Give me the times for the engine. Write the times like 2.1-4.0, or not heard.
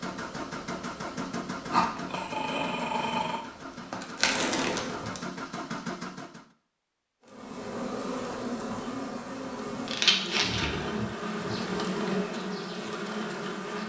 0.0-6.5.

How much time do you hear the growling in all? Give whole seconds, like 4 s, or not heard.
2 s.